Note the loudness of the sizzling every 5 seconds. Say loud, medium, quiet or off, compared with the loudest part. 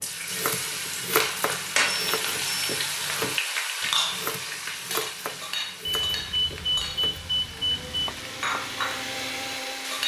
loud, medium.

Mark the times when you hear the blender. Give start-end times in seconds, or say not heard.
5.5-10.0.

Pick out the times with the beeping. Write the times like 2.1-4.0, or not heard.
1.9-2.7, 5.8-8.2.